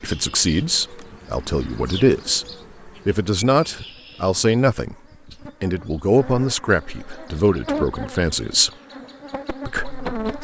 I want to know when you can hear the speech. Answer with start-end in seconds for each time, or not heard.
0.0-5.0, 5.6-8.7, 9.7-10.3.